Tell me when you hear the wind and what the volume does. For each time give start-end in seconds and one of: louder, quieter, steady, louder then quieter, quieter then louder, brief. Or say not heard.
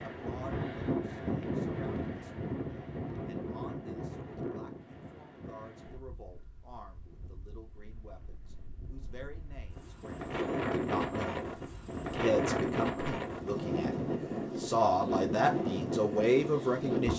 0.0-17.1 quieter then louder.